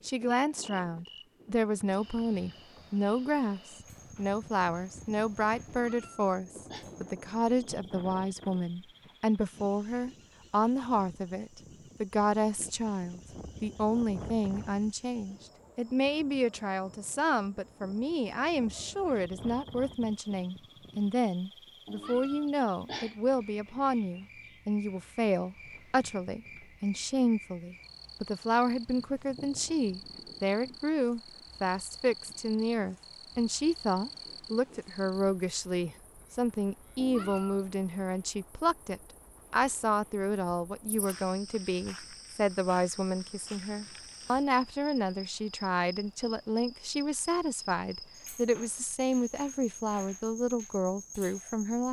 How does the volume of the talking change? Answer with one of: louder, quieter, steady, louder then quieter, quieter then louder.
steady.